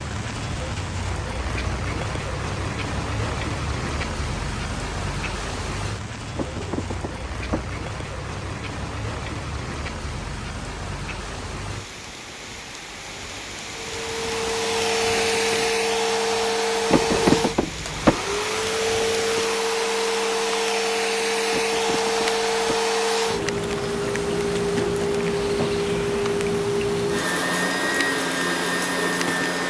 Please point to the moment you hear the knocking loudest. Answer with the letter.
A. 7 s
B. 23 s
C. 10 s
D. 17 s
D.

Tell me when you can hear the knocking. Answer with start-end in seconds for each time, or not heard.
6.3-7.7, 16.9-18.2, 21.5-22.8.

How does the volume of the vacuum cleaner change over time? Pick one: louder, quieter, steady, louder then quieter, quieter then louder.
steady.